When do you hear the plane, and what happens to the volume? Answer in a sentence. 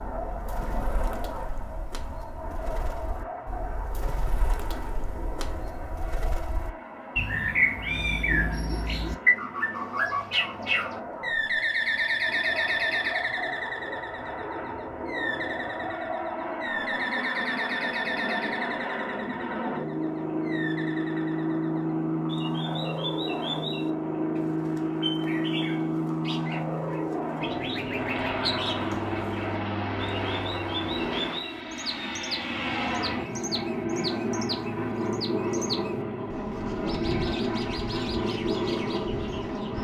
You can hear the plane from 0.0 to 39.7 s, getting louder.